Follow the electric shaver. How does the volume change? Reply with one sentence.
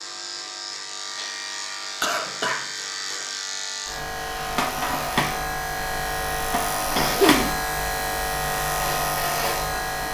The loudness of the electric shaver goes up.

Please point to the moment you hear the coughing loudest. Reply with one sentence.
The loudest moment of the coughing is at 7 seconds.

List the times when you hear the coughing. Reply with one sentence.
The coughing can be heard from 2.0 to 3.2 s and from 6.8 to 7.5 s.